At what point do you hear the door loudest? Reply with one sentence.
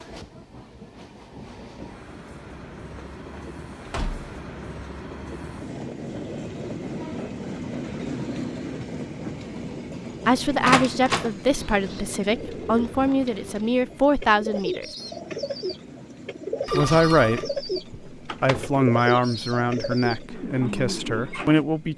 The loudest moment of the door is at 11 seconds.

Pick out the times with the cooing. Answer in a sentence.
You can hear the cooing from 11.6 to 21.6 s.